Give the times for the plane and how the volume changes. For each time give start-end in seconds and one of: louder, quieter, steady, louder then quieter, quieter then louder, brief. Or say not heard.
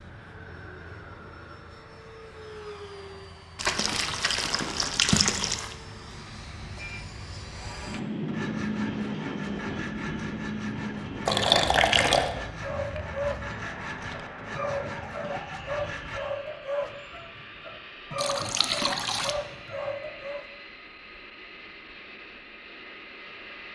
0.0-23.7 louder then quieter.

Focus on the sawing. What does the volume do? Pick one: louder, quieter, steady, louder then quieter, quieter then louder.
steady.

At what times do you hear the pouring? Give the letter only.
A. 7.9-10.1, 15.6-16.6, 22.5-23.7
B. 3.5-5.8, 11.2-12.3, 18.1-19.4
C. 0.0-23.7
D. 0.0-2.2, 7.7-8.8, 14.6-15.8
B.